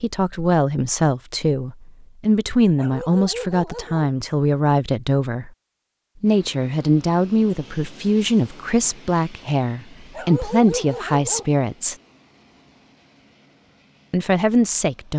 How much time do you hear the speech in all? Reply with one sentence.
You can hear the speech for 12 seconds altogether.